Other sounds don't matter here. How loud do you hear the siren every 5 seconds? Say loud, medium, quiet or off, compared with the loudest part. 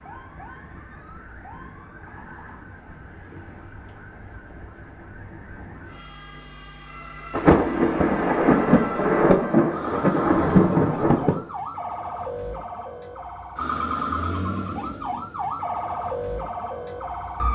quiet, medium, loud, loud.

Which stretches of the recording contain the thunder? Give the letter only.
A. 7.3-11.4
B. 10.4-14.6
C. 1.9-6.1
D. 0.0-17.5
A.